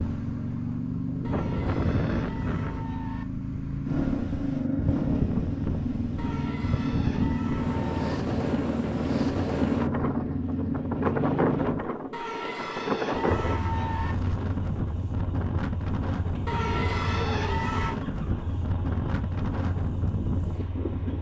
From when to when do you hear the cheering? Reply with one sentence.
You can hear the cheering from 1.2 to 3.2 s, from 6.2 to 8.1 s, from 12.1 to 14.2 s and from 16.4 to 18.0 s.